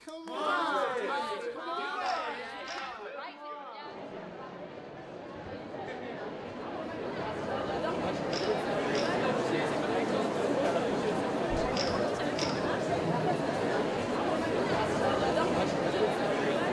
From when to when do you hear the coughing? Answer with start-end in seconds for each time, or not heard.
not heard.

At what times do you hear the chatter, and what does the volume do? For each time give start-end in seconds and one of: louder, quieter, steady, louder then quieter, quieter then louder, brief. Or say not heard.
0.0-16.6 quieter then louder.